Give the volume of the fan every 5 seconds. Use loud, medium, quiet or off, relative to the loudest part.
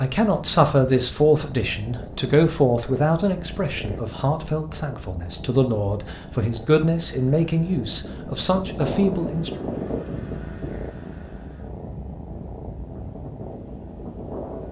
off, loud, medium.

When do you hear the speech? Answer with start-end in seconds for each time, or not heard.
0.0-9.6.